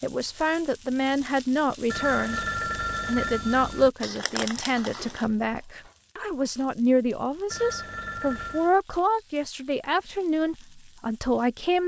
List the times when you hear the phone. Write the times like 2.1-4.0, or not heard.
1.9-3.9, 7.5-8.7.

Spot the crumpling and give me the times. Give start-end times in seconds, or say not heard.
4.0-5.2.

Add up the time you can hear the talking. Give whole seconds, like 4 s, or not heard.
11 s.